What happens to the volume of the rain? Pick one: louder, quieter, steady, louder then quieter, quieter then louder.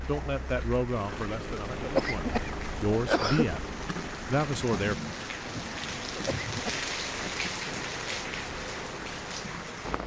louder.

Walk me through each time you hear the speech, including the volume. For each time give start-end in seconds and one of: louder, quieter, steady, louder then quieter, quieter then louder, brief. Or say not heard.
0.1-5.0 quieter then louder.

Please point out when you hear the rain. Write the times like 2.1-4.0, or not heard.
0.0-10.0.